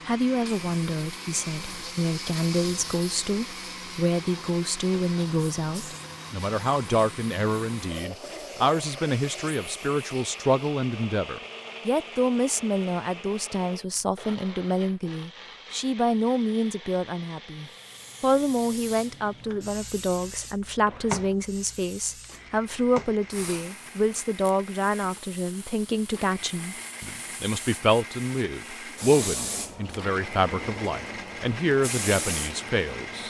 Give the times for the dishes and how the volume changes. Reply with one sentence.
The dishes can't be heard in this clip.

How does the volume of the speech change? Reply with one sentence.
The loudness of the speech stays about the same.